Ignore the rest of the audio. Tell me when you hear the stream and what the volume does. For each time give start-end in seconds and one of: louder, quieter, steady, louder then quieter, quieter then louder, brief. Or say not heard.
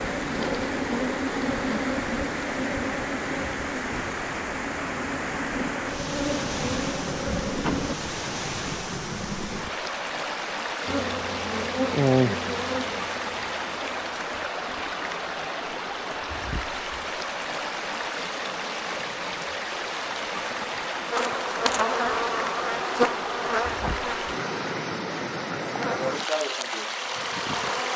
0.0-27.9 steady.